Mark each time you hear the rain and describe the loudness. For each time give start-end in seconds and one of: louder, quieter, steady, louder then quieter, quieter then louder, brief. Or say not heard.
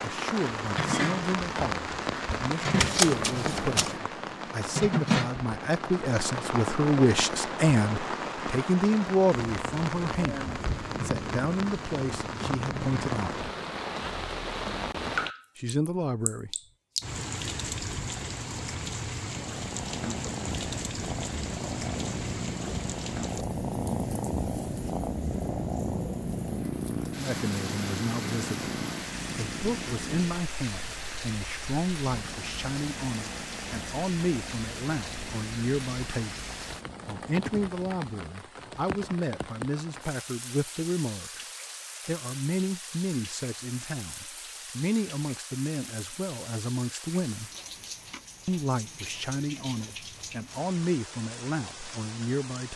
0.0-52.7 quieter.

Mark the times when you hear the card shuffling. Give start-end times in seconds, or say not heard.
2.7-4.0.